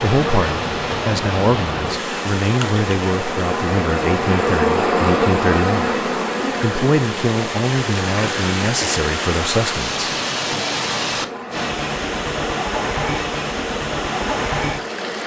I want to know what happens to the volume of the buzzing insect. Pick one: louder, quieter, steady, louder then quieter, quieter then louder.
louder then quieter.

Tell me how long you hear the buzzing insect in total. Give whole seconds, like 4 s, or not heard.
15 s.